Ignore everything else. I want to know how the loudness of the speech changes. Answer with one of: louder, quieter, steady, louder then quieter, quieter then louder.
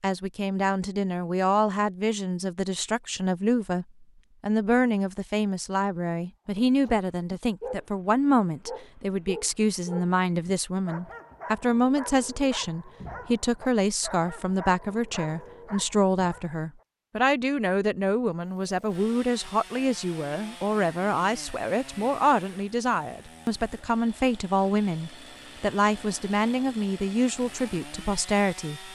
steady.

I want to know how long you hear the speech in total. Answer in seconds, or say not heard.
29 s.